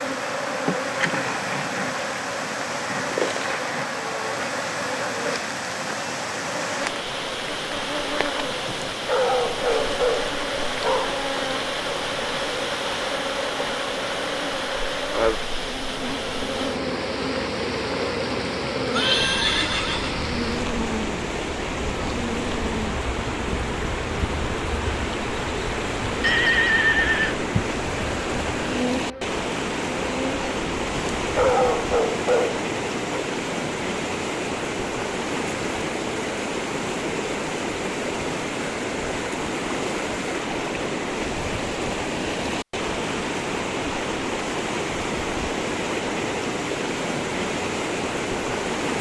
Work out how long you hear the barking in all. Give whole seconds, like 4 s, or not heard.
5 s.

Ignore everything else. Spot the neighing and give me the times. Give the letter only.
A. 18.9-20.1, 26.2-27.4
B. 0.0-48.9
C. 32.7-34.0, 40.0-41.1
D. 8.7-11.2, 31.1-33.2
A.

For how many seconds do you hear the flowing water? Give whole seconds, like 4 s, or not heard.
49 s.